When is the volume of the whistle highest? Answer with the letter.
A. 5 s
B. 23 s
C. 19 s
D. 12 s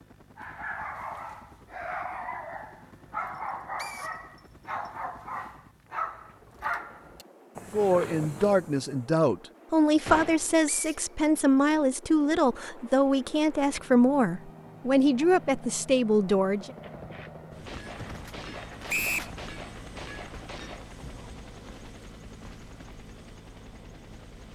C.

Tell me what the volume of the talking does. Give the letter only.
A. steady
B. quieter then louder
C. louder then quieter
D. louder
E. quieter
A.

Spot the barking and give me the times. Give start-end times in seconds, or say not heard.
0.3-9.1.